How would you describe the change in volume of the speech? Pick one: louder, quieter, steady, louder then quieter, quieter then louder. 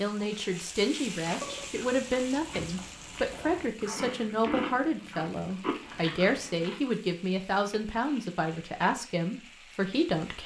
steady.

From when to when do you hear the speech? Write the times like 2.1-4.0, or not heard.
0.0-10.4.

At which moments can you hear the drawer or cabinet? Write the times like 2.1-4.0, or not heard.
not heard.